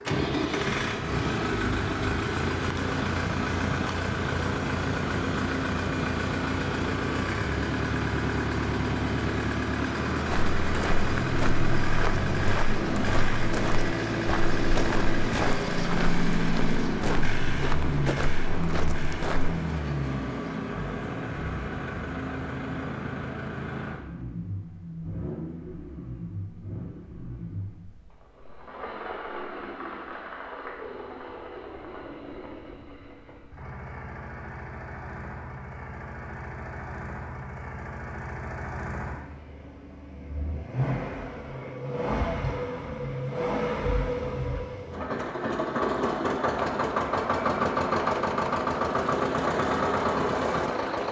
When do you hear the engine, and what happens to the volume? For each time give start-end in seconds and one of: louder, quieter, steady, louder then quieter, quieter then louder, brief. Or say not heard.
0.0-51.0 quieter then louder.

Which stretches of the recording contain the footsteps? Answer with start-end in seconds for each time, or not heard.
10.2-19.6.